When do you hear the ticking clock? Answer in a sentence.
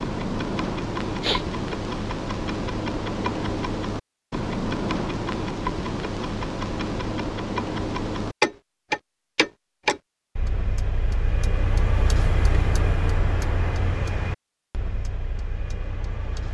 The ticking clock can be heard from 0.0 to 16.4 s.